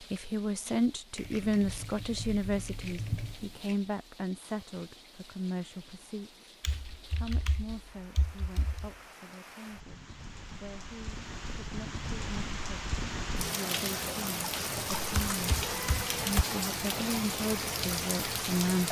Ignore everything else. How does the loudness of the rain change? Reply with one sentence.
The volume of the rain goes up.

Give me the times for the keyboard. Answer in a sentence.
The keyboard can be heard from 1.1 to 3.8 s, from 6.6 to 8.9 s and from 14.9 to 16.4 s.